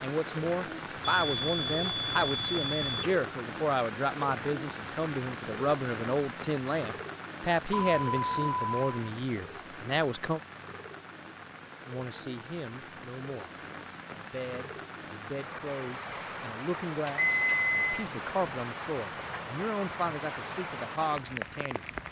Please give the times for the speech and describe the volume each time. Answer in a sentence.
You can hear the speech from 0.0 to 10.4 s, at a steady volume; and from 11.8 to 21.9 s, getting louder.